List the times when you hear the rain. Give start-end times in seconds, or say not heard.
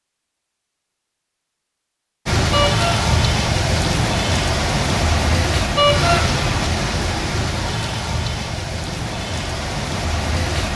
2.2-10.7.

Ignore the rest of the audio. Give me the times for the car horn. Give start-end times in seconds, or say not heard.
2.5-3.0, 5.8-6.2.